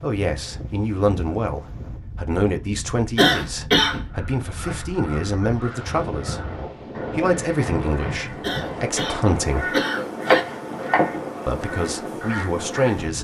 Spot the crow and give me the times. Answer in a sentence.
You can hear the crow from 4.1 to 13.1 s.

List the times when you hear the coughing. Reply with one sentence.
The coughing can be heard from 3.1 to 4.0 s and from 8.4 to 10.4 s.